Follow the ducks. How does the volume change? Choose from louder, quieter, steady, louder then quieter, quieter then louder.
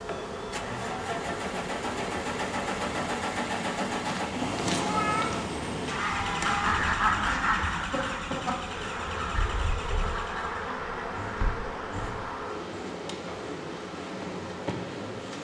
quieter.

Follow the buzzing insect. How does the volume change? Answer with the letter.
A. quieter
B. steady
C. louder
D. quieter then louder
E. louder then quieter
B.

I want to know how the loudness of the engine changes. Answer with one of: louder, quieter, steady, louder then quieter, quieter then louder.
quieter.